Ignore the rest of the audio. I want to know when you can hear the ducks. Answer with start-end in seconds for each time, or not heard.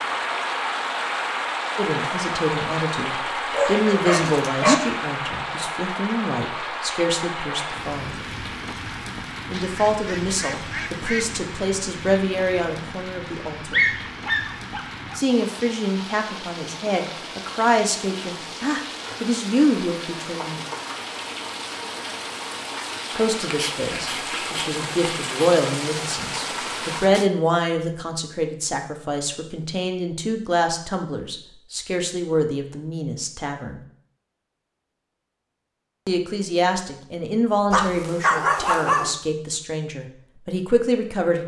9.5-11.4.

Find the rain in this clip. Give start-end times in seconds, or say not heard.
0.0-27.3.